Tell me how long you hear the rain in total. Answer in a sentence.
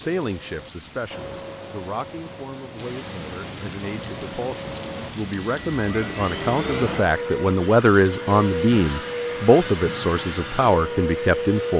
The rain can be heard for 7 seconds in total.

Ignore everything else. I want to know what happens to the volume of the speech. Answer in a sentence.
The volume of the speech goes up.